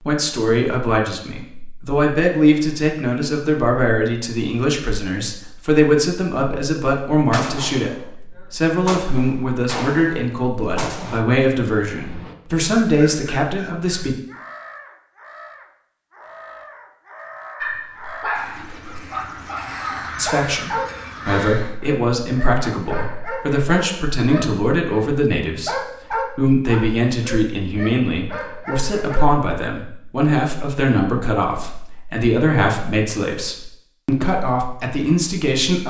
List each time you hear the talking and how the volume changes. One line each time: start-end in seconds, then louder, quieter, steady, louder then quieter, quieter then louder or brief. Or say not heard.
0.0-14.2 steady
20.1-35.8 steady.